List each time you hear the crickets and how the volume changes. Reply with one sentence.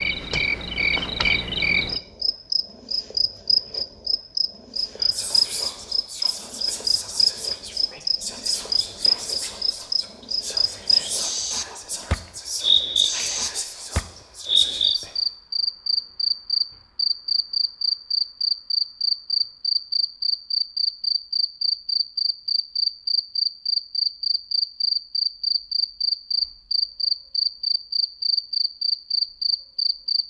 You can hear the crickets from 0.0 to 30.2 s, at a steady volume.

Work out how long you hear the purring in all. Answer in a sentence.
The purring can't be heard in this clip.